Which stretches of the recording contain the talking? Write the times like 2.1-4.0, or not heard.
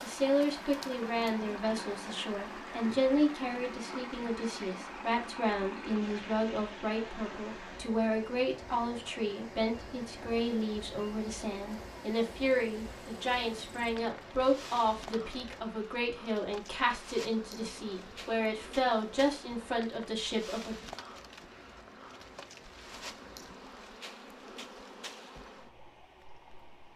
0.0-20.9.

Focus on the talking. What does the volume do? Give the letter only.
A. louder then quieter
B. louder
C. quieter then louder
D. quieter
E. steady
E.